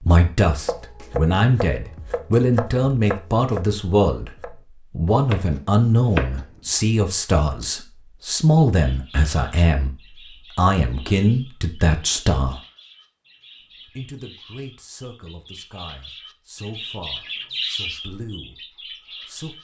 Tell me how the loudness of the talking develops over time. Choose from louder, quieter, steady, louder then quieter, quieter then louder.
quieter.